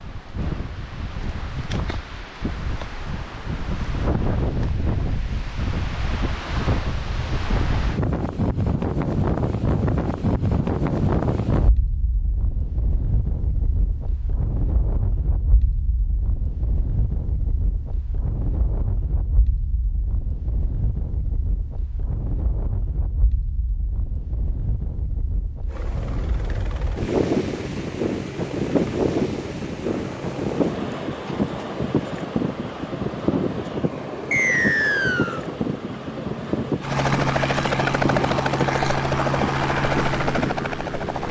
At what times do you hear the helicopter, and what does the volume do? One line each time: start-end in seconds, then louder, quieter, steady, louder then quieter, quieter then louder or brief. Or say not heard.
25.6-41.2 louder.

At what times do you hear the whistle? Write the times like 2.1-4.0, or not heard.
34.3-35.4.